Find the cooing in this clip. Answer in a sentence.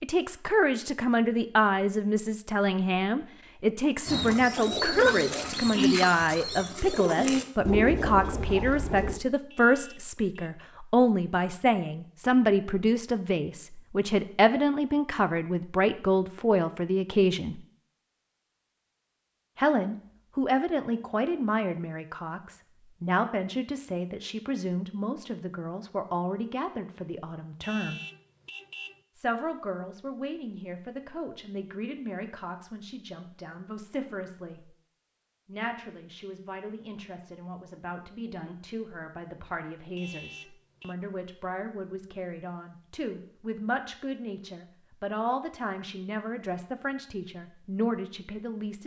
You can hear the cooing from 4.0 to 9.2 s.